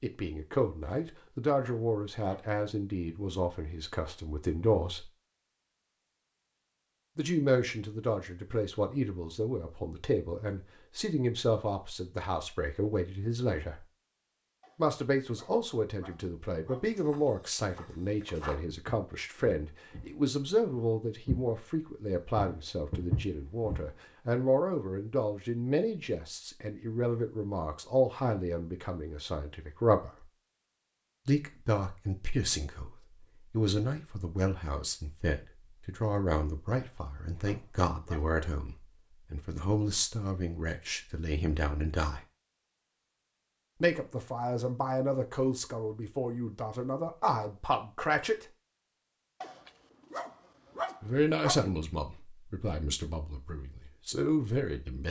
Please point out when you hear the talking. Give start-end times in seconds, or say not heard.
0.0-5.1, 7.2-13.8, 14.8-30.2, 31.2-42.2, 43.8-48.5, 51.0-55.0.